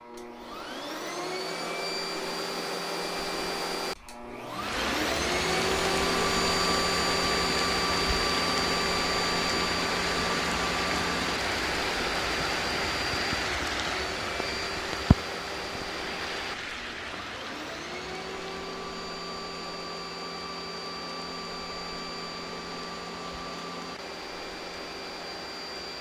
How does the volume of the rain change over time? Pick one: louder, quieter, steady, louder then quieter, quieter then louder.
quieter.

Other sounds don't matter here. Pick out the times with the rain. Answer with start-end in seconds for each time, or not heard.
4.5-25.9.